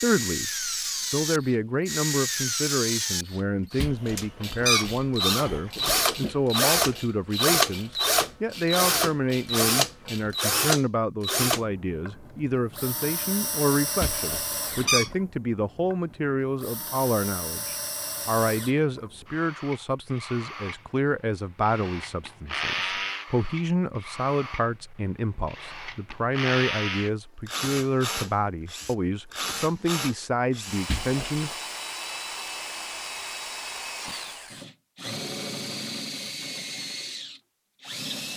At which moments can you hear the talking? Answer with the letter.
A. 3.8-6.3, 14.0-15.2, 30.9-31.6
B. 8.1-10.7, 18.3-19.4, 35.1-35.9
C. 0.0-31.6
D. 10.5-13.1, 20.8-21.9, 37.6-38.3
C.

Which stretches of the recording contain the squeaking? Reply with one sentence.
The squeaking can be heard from 3.8 to 6.3 s, from 14.0 to 15.2 s and from 30.9 to 31.6 s.